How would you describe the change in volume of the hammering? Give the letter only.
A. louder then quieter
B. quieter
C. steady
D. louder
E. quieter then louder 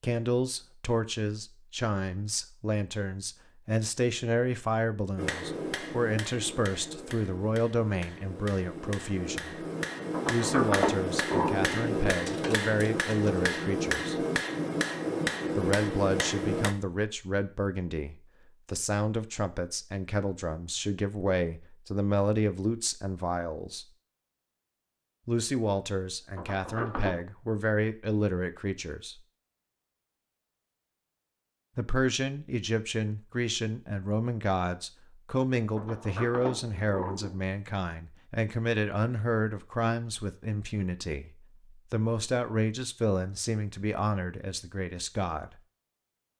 D.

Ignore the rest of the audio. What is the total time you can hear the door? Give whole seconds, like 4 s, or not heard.
4 s.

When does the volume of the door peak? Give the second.
11 s.